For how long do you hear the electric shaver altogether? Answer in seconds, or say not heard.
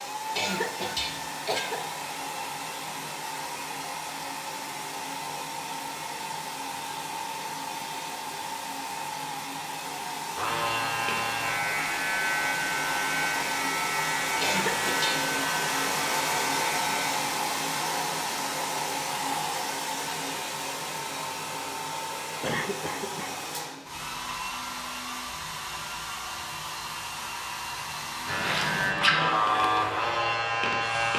10 s.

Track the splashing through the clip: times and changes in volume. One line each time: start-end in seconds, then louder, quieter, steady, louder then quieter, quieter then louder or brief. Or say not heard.
not heard.